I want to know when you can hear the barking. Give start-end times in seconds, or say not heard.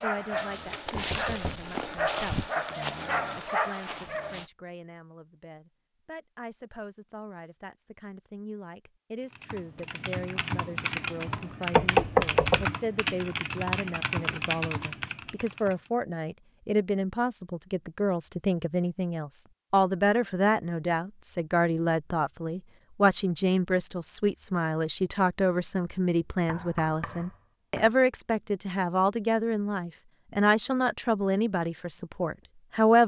0.0-4.5.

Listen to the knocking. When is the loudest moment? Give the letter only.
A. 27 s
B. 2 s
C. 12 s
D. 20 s
C.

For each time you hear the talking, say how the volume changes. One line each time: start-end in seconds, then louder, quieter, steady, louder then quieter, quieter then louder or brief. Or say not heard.
0.0-33.0 louder.